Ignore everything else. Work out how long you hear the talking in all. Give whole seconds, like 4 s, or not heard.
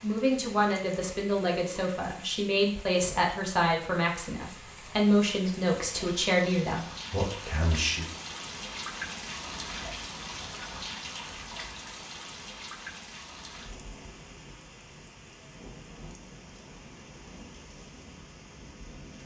8 s.